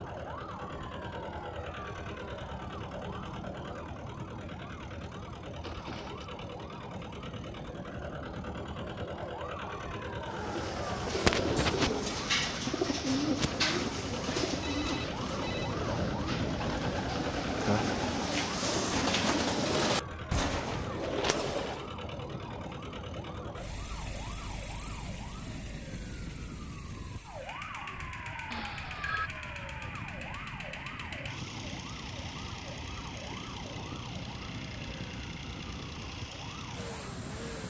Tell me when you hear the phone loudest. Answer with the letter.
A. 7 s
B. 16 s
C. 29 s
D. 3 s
C.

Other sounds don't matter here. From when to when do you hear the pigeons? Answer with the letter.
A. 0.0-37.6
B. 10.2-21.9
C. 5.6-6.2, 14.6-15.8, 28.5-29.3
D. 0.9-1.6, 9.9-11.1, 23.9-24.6
B.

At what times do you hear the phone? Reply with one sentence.
The phone can be heard from 5.6 to 6.2 s, from 14.6 to 15.8 s and from 28.5 to 29.3 s.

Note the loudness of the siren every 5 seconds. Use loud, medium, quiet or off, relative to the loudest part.
medium, medium, medium, loud, medium, medium, medium, medium.